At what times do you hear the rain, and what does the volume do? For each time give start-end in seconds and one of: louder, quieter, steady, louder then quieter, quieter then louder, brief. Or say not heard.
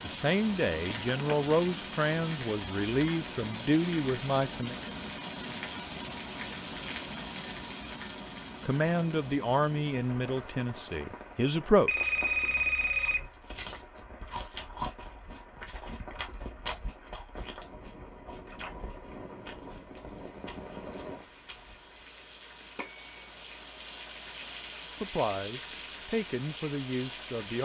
0.0-27.6 quieter then louder.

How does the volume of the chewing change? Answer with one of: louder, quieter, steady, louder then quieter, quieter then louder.
quieter.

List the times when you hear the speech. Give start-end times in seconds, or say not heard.
0.0-4.8, 8.6-12.2, 24.9-27.6.